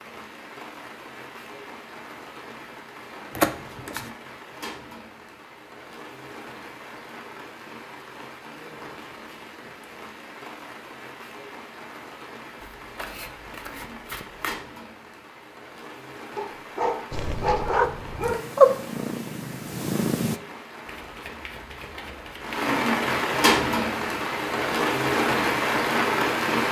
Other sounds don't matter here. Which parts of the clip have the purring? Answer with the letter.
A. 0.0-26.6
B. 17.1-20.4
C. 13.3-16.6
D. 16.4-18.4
B.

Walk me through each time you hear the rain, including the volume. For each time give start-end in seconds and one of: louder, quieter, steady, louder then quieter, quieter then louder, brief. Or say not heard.
0.0-26.6 louder.